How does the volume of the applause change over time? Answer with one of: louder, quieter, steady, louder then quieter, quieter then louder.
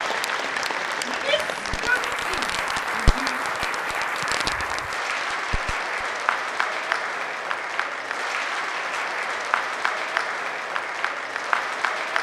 steady.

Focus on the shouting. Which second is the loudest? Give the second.
2 s.